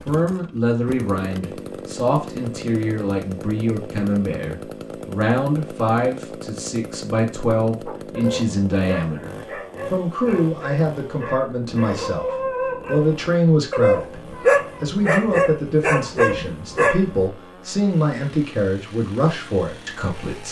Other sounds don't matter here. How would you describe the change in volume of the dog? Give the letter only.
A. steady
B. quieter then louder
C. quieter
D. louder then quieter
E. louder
E.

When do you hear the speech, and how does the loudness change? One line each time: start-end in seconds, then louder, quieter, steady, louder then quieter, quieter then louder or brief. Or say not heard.
0.1-20.4 steady.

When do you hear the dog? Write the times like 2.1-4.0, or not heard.
7.8-17.2.